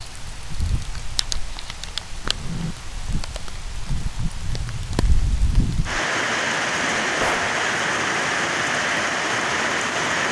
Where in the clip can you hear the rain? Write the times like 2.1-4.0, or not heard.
0.0-10.2.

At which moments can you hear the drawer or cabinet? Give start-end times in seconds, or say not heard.
2.2-2.8, 6.7-7.5.